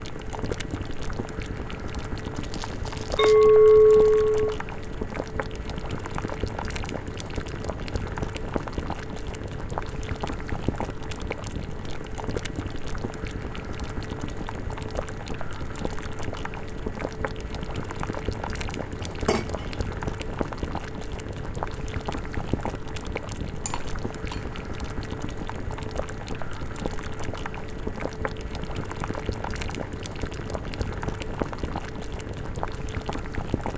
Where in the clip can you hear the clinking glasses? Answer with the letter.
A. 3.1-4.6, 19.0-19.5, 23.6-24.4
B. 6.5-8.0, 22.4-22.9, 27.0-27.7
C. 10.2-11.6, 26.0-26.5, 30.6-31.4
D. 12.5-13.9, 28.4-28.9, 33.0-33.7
A.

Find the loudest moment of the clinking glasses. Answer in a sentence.
The loudest moment of the clinking glasses is at 4 seconds.